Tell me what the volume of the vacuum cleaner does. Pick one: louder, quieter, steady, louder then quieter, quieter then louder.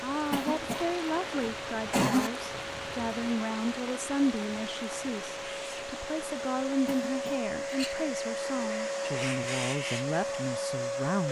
louder.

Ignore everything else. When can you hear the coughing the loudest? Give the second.
2 s.